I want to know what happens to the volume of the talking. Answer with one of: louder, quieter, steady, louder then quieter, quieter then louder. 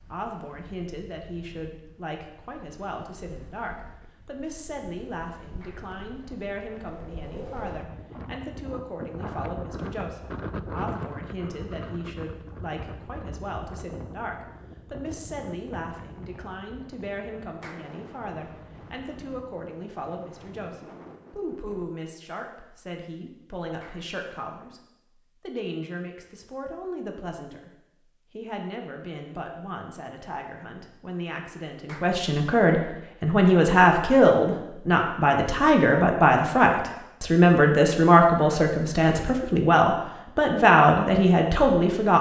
louder.